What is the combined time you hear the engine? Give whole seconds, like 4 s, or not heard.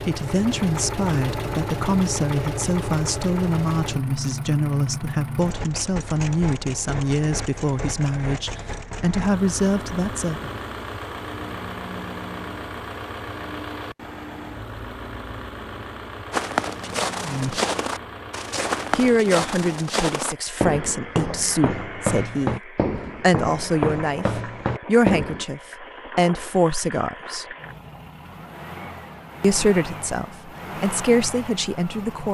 32 s.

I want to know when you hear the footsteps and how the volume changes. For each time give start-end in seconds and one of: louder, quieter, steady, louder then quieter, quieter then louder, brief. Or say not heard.
16.3-25.4 steady.